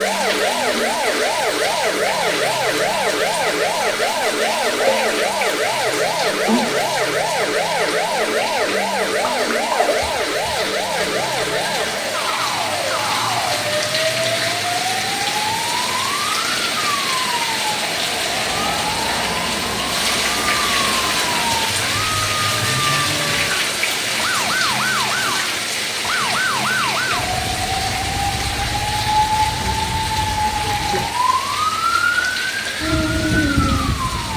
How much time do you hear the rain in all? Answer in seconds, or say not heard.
34 s.